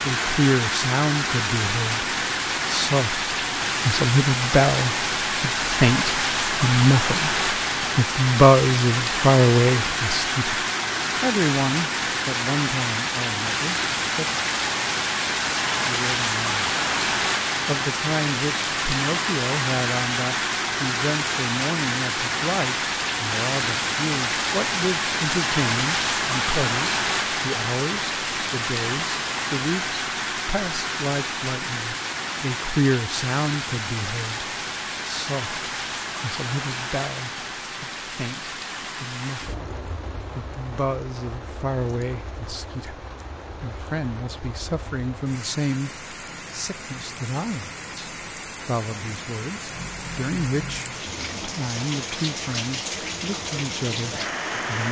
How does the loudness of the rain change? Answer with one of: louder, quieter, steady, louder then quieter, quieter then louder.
quieter.